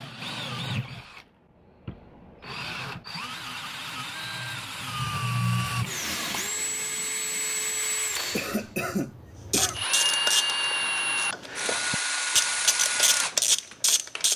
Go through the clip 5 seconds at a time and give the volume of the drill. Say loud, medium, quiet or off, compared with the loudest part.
medium, loud, loud.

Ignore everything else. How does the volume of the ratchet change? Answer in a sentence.
The loudness of the ratchet goes down, then up.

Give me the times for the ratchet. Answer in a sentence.
The ratchet can be heard from 9.5 to 14.3 s.